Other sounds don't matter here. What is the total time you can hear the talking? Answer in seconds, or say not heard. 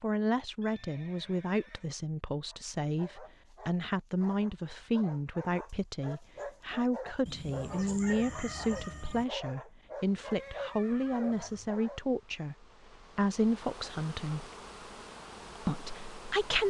15 s.